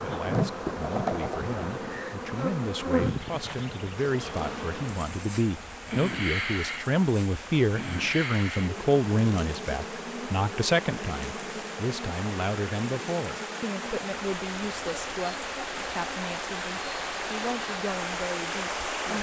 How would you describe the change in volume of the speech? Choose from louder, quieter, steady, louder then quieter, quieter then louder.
louder then quieter.